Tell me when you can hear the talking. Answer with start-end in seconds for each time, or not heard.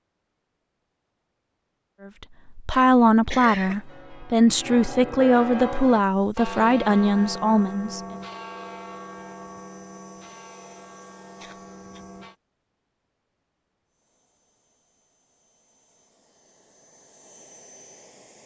2.0-8.0.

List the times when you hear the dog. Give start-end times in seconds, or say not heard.
not heard.